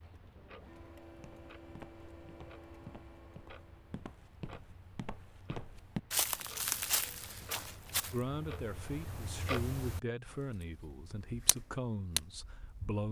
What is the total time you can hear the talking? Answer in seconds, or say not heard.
5 s.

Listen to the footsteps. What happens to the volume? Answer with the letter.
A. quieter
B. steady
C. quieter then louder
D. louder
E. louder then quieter
D.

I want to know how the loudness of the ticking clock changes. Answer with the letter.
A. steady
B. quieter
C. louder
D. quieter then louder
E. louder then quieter
C.